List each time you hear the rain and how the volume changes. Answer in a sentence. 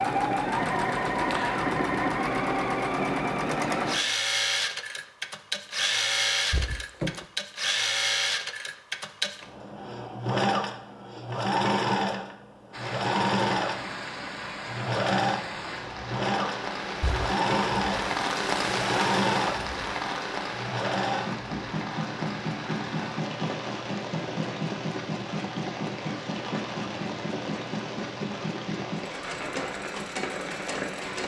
You can hear the rain from 12.7 to 31.2 s, getting louder then quieter.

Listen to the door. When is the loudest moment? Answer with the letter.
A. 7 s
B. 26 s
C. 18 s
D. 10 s
A.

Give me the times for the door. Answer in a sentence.
You can hear the door from 6.5 to 7.2 s and from 17.0 to 17.6 s.